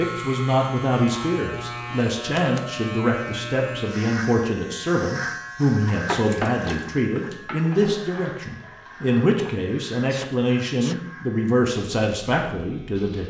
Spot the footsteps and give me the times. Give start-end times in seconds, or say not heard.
not heard.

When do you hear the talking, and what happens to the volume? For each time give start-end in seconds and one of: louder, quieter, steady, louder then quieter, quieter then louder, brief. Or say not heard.
0.0-13.2 steady.